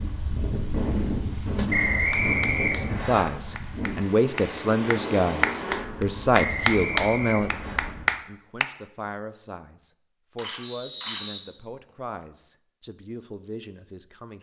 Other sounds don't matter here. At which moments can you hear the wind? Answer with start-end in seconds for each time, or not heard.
0.0-8.2.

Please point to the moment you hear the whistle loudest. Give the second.
2 s.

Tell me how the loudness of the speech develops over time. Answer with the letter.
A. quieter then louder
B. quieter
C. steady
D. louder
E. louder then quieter
B.